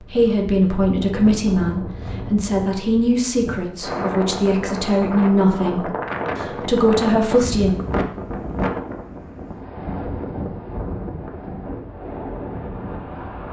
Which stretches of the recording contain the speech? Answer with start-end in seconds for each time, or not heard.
0.0-7.7.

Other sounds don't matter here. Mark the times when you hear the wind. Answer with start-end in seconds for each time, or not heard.
0.0-13.4.